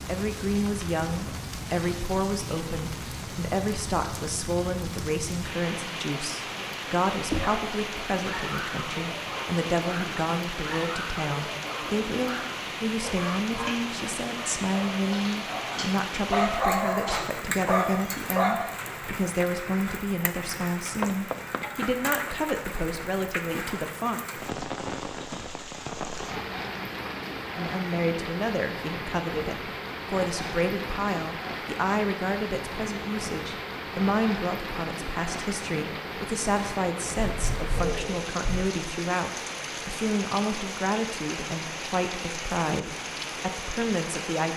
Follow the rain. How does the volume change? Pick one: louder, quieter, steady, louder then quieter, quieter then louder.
steady.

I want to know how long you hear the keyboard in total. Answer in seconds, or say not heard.
not heard.